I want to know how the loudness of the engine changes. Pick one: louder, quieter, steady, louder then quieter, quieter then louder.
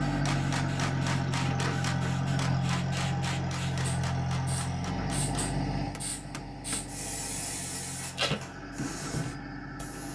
quieter.